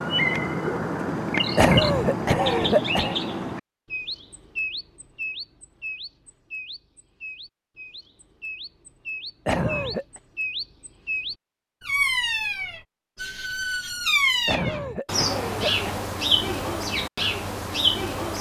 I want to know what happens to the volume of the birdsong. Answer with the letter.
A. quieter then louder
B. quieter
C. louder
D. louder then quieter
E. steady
A.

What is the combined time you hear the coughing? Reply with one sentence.
The coughing can be heard for 4 seconds in total.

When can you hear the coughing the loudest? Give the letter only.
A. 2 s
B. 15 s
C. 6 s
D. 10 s
A.